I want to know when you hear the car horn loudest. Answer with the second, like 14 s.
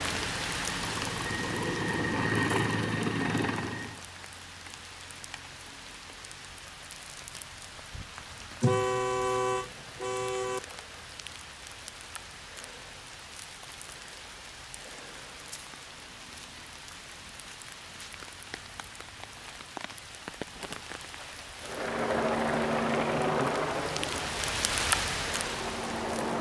9 s.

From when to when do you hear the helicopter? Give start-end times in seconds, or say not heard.
0.0-4.0, 21.6-26.3.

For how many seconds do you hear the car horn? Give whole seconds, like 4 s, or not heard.
2 s.